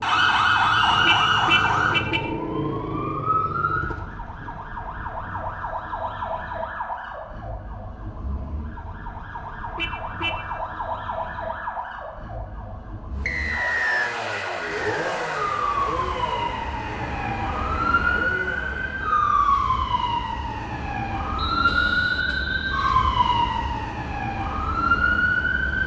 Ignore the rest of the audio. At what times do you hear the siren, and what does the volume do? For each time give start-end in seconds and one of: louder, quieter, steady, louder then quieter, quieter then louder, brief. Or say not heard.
0.0-25.8 quieter then louder.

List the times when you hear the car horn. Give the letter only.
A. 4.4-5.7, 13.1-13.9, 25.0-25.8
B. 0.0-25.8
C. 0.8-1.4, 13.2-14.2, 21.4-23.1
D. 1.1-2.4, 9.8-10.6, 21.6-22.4
D.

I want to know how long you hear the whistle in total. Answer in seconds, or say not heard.
3 s.